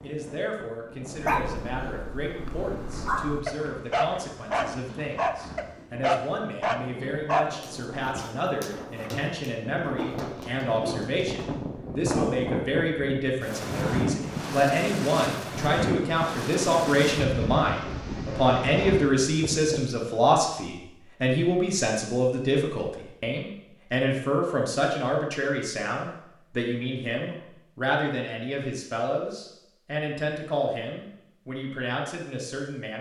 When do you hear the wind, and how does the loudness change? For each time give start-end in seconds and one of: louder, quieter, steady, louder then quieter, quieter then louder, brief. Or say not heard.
0.0-19.9 louder.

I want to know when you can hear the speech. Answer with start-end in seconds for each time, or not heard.
0.0-32.9.